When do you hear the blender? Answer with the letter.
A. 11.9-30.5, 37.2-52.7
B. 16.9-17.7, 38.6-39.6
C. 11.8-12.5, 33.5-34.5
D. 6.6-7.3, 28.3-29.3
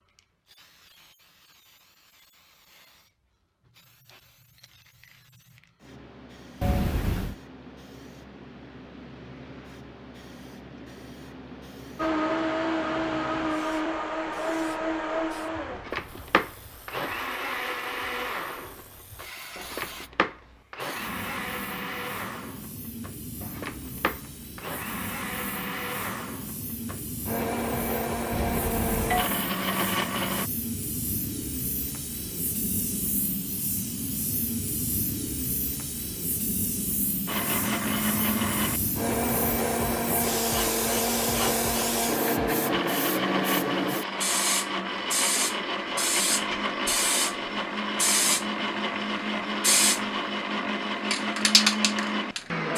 A.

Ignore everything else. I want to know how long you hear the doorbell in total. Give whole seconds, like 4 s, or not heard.
2 s.